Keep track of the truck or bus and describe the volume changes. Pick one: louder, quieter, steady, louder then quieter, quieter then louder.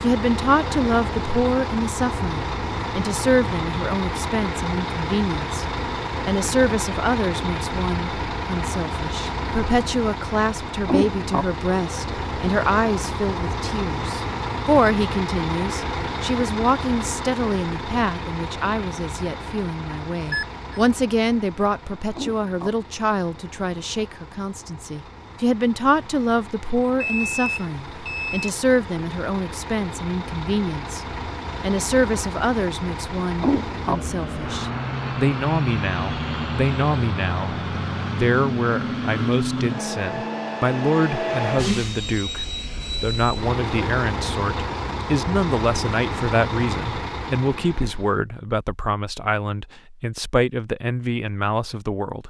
quieter then louder.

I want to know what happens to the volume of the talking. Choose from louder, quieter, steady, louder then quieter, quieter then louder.
steady.